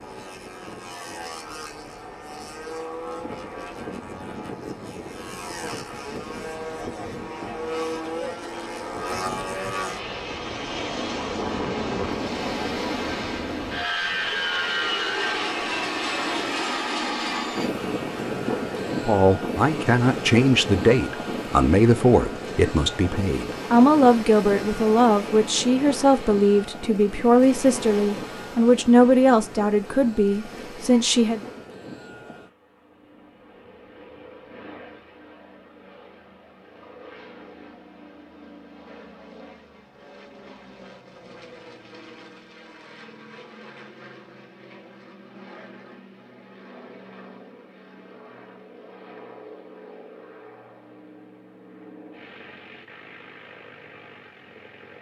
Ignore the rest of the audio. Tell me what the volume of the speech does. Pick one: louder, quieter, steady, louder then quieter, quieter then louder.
steady.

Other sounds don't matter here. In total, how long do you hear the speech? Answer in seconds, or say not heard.
12 s.